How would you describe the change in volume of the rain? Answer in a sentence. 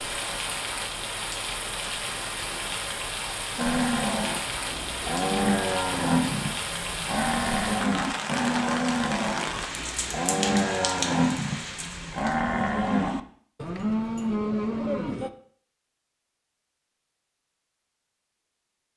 The loudness of the rain stays about the same.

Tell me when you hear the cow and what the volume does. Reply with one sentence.
You can hear the cow from 3.5 to 15.3 s, at a steady volume.